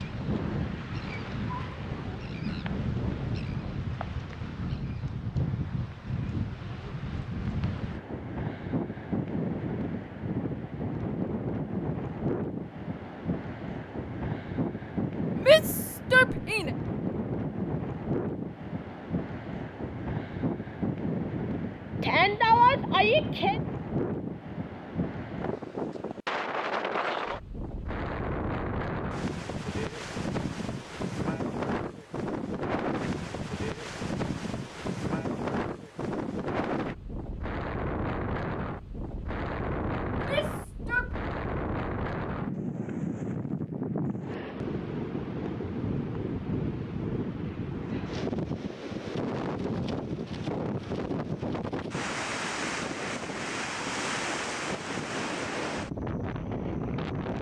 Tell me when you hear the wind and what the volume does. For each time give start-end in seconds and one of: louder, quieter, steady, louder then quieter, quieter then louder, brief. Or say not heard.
0.0-57.3 steady.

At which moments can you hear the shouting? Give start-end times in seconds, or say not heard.
15.4-16.7, 22.0-23.6, 40.1-41.1.